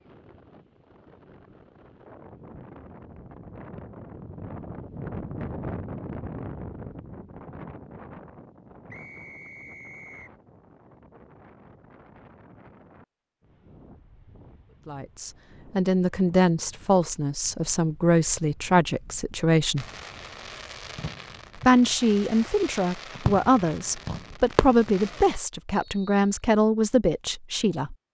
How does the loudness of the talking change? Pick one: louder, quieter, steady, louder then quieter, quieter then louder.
steady.